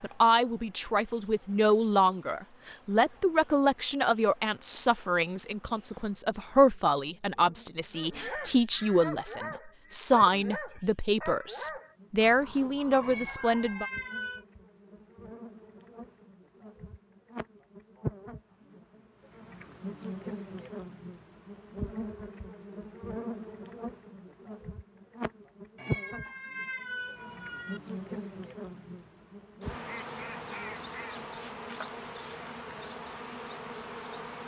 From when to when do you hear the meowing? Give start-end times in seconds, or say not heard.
13.0-14.4, 25.8-27.8.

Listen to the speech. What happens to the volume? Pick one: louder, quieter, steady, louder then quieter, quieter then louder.
steady.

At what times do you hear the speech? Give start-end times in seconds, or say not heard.
0.0-13.8.